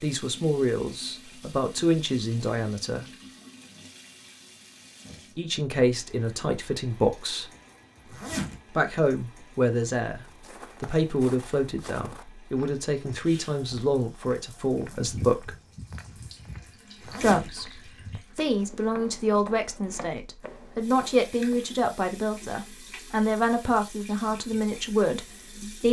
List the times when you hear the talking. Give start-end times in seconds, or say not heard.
0.0-3.0, 5.3-7.5, 8.7-15.6, 17.2-25.8.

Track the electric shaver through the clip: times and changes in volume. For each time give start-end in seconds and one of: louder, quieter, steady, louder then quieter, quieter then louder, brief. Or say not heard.
not heard.